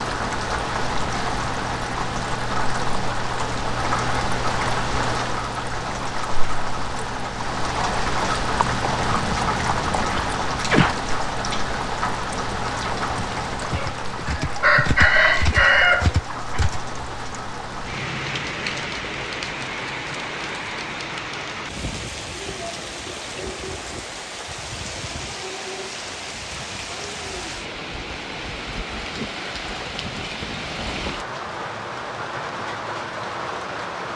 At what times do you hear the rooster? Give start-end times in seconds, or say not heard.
13.6-16.7.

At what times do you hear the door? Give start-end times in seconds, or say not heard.
not heard.